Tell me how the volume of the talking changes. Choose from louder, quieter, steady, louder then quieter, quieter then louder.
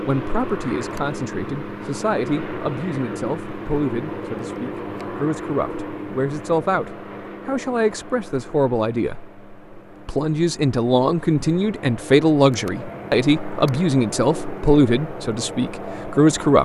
louder.